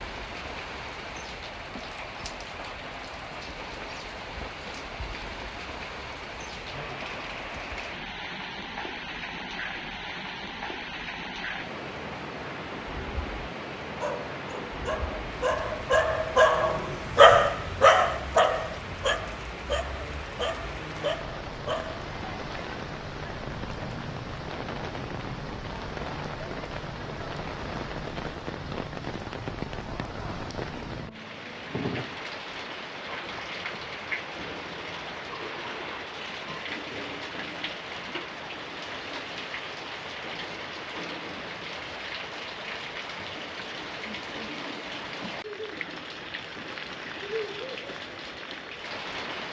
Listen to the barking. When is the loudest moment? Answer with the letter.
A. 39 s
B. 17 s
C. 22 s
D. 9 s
B.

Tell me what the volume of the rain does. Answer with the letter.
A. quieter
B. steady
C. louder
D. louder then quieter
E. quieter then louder
B.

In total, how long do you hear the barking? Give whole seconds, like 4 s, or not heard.
8 s.